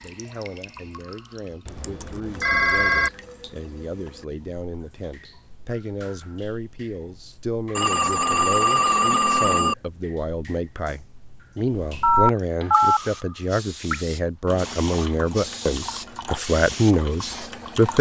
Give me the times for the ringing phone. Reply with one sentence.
You can hear the ringing phone from 1.6 to 3.1 s, from 7.8 to 9.8 s and from 12.0 to 13.0 s.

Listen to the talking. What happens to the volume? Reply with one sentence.
The loudness of the talking goes up.